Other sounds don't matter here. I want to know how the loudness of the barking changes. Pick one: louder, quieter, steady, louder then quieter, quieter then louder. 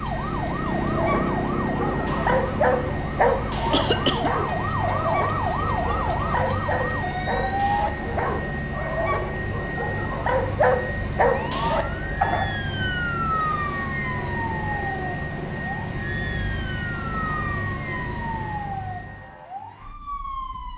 quieter then louder.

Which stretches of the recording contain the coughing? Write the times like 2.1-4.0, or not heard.
3.7-4.3.